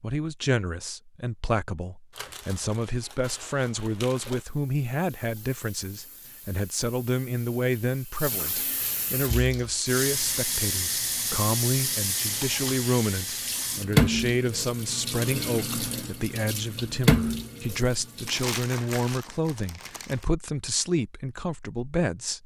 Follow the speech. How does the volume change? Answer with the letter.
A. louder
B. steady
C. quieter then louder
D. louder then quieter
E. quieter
B.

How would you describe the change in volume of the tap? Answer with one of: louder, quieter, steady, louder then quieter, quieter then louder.
louder.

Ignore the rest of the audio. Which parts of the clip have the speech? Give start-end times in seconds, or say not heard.
0.0-22.4.